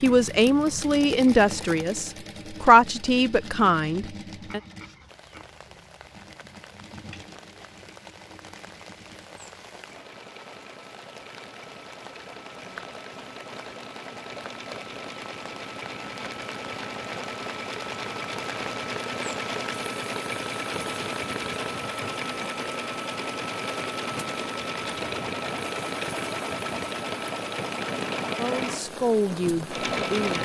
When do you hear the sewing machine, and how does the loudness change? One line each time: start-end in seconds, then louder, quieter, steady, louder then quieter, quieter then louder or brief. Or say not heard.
0.0-30.3 quieter then louder.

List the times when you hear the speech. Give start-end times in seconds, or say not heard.
0.0-4.6, 28.4-30.3.